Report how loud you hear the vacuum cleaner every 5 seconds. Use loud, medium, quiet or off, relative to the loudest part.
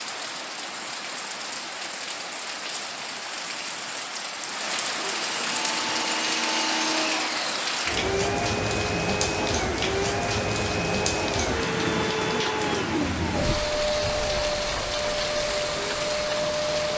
off, loud, loud, loud.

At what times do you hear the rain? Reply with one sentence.
You can hear the rain from 0.0 to 16.9 s.